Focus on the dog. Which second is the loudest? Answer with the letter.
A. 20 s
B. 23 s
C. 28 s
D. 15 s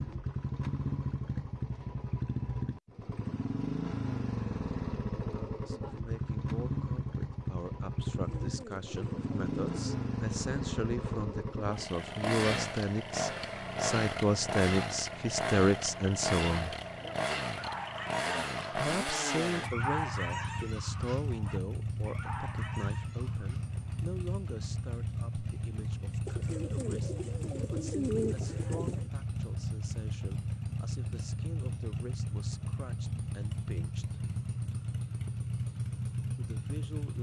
A.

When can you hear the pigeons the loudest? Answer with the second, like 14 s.
28 s.